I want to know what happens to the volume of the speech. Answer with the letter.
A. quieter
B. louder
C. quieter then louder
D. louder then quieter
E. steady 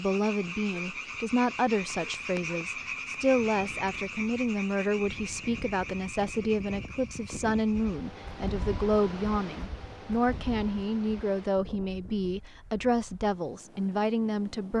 E.